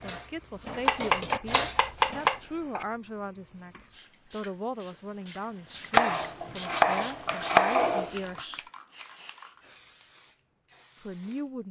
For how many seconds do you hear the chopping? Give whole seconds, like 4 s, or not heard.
4 s.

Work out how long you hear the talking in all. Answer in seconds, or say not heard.
9 s.